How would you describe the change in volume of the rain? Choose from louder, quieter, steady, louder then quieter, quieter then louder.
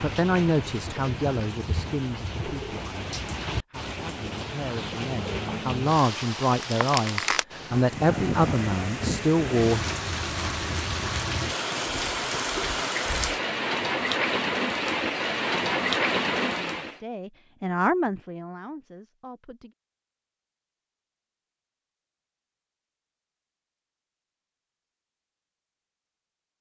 louder.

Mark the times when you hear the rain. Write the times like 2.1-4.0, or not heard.
0.0-17.0.